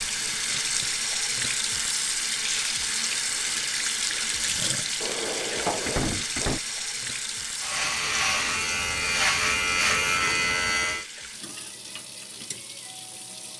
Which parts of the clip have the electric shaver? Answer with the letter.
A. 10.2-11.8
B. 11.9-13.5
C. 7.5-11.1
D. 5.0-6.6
C.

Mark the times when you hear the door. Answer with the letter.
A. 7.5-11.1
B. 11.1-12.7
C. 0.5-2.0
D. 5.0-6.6
D.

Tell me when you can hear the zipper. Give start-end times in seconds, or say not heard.
not heard.